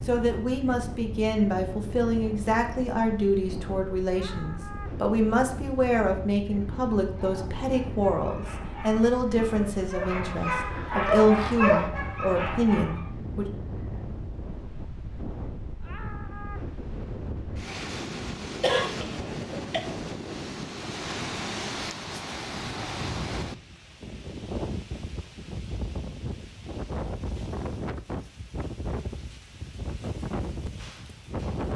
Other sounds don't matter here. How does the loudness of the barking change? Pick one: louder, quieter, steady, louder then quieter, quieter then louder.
louder.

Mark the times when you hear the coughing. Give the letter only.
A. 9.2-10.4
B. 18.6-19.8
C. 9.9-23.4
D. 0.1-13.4
B.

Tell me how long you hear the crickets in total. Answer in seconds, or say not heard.
not heard.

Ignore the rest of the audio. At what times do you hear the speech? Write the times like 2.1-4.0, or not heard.
0.1-13.4.